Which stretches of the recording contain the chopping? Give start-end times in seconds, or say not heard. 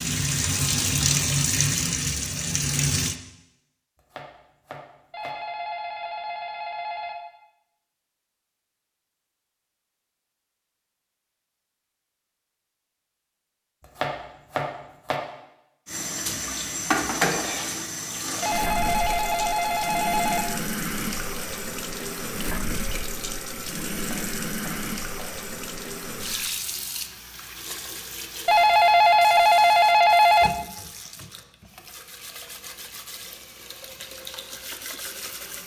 4.0-5.3, 13.9-15.2, 23.9-25.3.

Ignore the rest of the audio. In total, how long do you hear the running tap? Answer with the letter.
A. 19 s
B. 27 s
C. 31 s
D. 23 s
D.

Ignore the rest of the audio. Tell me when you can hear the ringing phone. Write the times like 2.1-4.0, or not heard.
5.1-7.2, 18.4-20.4, 28.4-30.5.